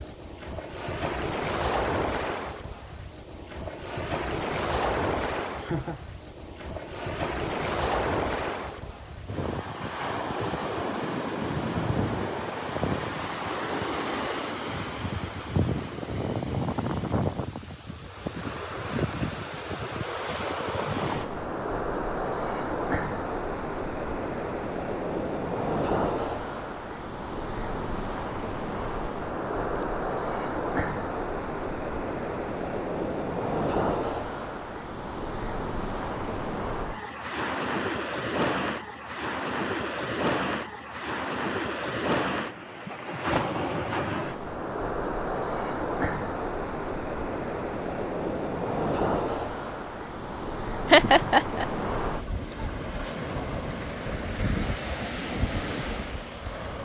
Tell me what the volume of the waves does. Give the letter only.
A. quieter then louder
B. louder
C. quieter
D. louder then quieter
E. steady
E.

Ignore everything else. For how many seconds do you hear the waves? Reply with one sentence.
The waves can be heard for 57 seconds in total.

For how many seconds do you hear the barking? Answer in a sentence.
You can't hear the barking here.